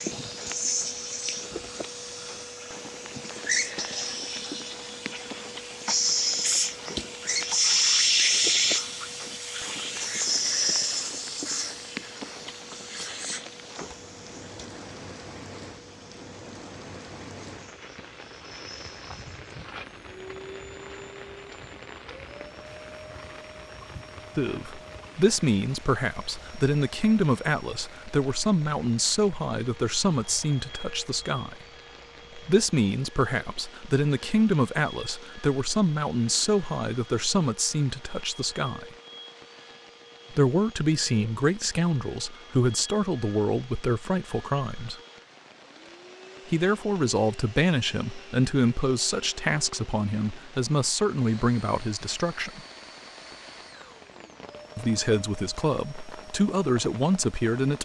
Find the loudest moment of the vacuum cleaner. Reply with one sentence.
The volume of the vacuum cleaner peaks at 8 seconds.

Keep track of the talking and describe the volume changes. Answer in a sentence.
The loudness of the talking stays about the same.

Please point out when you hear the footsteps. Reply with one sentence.
You can't hear the footsteps here.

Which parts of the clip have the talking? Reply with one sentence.
The talking can be heard from 24.4 to 31.6 s, from 32.5 to 38.9 s, from 40.3 to 45.0 s, from 46.5 to 52.6 s and from 54.8 to 57.8 s.